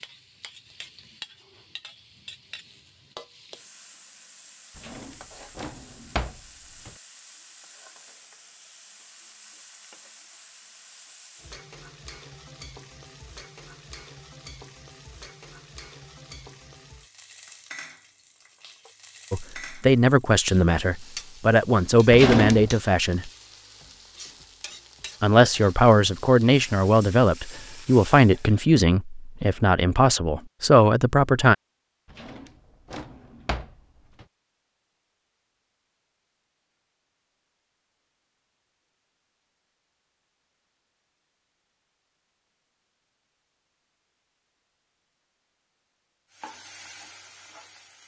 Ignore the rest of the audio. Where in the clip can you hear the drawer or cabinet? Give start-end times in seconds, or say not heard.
4.8-6.9, 22.1-22.8, 32.1-34.2.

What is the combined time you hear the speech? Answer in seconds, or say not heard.
10 s.